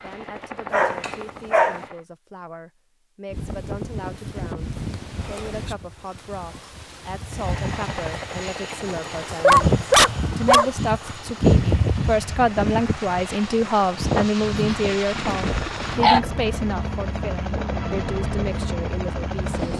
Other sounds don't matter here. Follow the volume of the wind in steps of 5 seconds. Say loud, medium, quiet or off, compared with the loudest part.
medium, medium, loud, medium.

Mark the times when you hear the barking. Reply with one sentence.
You can hear the barking from 0.7 to 1.8 s, from 9.4 to 11.1 s and from 14.6 to 16.2 s.